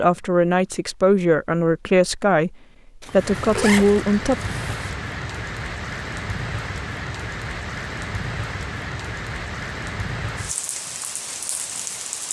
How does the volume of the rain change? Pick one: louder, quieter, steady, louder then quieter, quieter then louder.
steady.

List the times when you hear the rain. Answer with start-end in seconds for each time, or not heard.
3.0-12.2.